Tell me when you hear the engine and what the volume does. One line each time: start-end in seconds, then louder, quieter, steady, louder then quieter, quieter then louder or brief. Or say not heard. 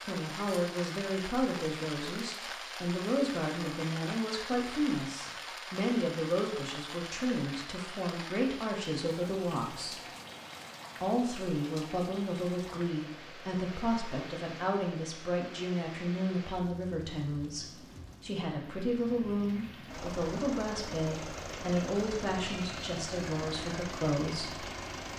19.9-25.1 steady.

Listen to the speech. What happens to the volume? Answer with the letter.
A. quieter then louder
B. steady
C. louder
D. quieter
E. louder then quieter
B.